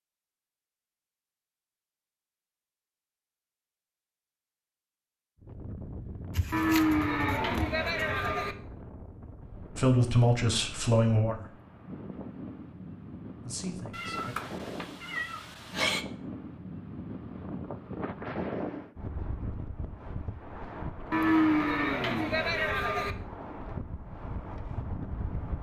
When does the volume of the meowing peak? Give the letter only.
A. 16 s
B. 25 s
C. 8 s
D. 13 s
A.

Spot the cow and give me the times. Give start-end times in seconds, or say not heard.
6.5-8.6, 21.1-23.1.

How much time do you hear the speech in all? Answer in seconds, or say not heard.
3 s.